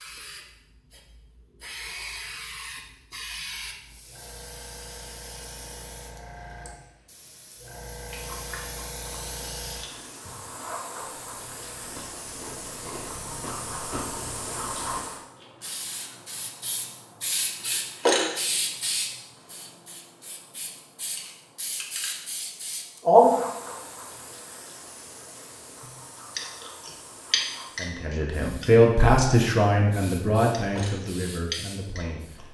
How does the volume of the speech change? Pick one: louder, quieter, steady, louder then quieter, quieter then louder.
quieter.